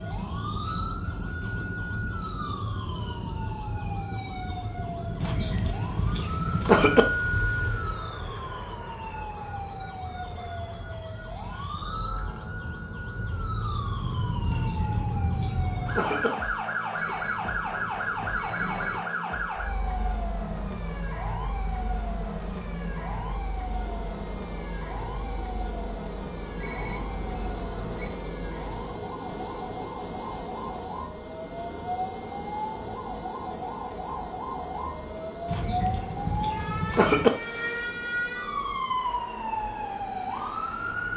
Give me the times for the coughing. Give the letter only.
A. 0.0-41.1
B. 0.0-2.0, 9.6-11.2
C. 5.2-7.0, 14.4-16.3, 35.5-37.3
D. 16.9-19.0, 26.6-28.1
C.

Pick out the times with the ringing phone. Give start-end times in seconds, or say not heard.
16.9-19.0, 26.6-28.1.